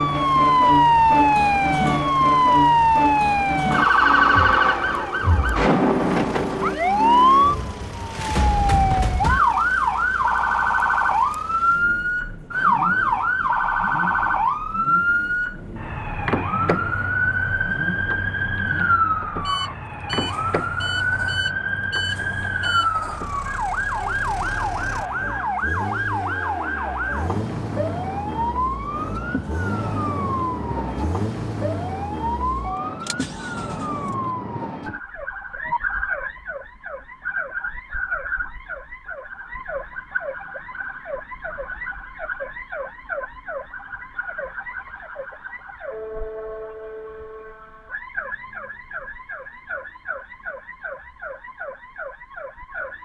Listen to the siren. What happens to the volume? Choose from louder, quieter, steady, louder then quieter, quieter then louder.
quieter.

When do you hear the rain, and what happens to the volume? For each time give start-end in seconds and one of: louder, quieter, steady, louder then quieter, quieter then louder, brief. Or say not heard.
not heard.